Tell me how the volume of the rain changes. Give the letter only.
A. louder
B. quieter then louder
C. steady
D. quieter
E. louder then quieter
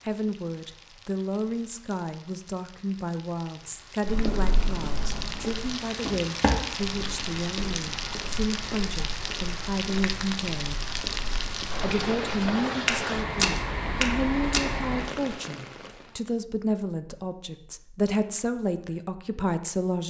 A.